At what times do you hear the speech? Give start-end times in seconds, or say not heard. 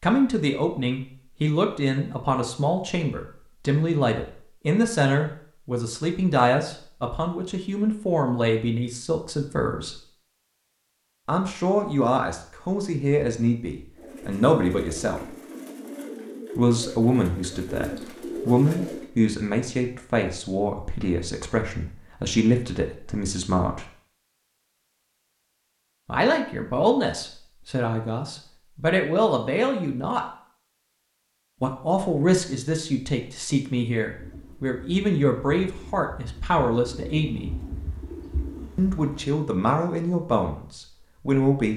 0.0-10.0, 11.2-15.3, 16.6-23.9, 26.1-30.2, 31.6-37.5, 38.8-41.7.